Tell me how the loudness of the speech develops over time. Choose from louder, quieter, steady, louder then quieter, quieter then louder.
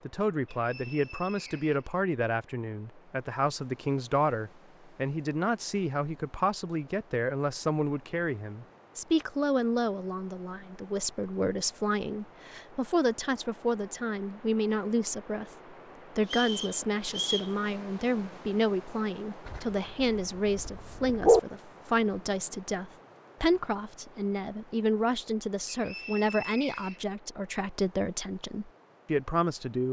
steady.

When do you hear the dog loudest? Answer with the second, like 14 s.
21 s.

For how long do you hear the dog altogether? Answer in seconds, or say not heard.
2 s.